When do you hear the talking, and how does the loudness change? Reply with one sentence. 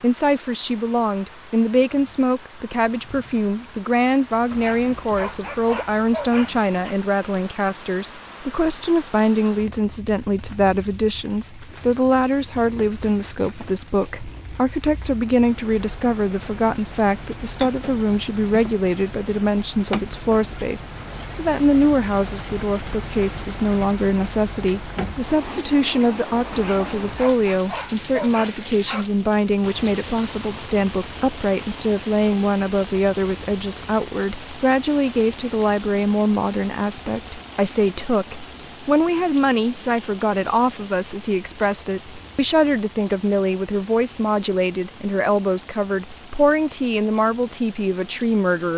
The talking can be heard from 0.0 to 48.7 s, at a steady volume.